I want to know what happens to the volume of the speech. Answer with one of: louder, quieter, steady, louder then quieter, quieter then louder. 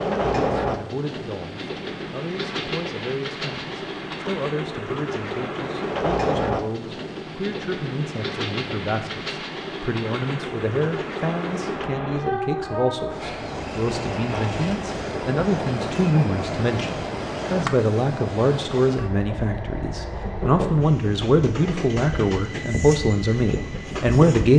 louder.